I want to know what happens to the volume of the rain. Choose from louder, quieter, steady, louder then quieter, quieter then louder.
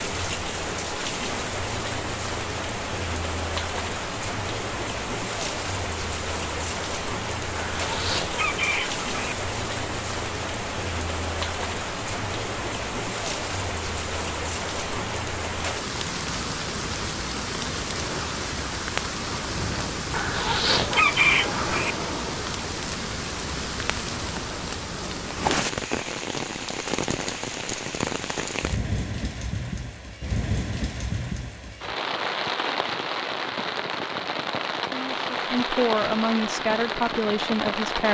steady.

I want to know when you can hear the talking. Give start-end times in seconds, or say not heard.
34.9-38.0.